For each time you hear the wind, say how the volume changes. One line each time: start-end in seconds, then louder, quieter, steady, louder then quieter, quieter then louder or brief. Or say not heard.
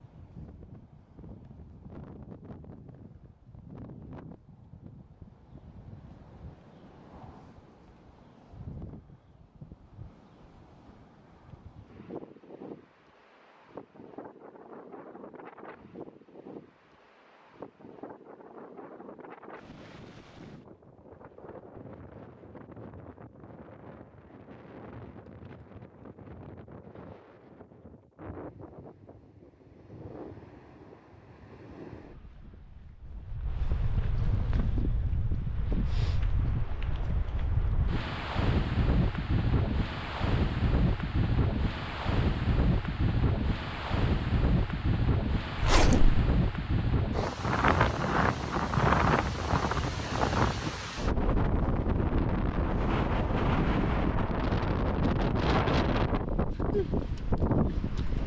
0.0-58.2 louder.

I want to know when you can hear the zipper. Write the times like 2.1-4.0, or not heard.
45.5-46.2.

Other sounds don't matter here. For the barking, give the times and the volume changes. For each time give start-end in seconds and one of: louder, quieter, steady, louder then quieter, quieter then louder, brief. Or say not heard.
not heard.